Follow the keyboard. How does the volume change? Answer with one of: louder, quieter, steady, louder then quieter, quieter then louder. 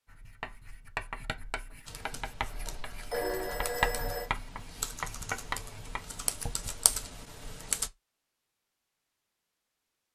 louder.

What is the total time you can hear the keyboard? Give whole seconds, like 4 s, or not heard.
6 s.